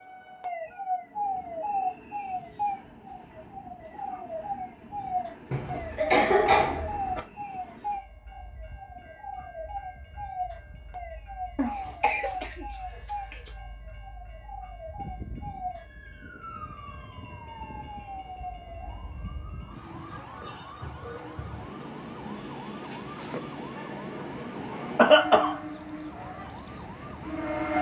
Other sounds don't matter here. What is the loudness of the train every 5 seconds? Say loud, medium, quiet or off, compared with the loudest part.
quiet, quiet, quiet, quiet, medium, loud.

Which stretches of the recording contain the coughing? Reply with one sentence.
The coughing can be heard from 5.5 to 7.2 s, from 11.6 to 13.5 s and from 24.9 to 25.6 s.